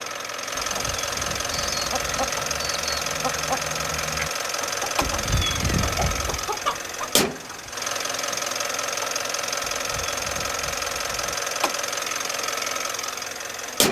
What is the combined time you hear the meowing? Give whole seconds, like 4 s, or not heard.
5 s.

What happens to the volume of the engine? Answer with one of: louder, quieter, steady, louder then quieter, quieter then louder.
steady.